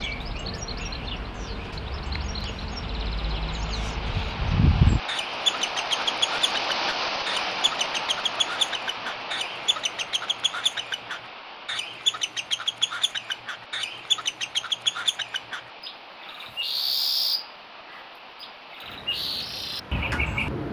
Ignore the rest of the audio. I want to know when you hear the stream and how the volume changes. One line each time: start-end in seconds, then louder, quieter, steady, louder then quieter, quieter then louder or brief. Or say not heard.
0.0-20.6 louder then quieter.